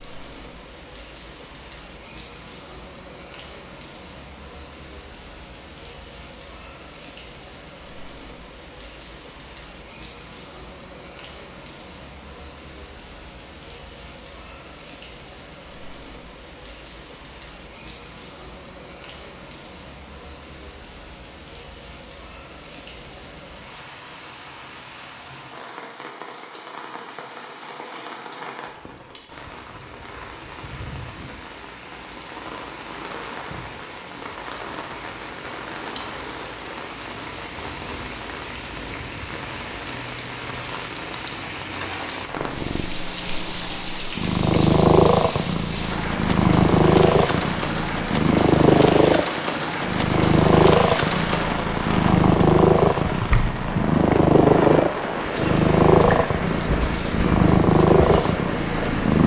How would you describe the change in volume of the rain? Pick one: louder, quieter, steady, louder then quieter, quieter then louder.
louder.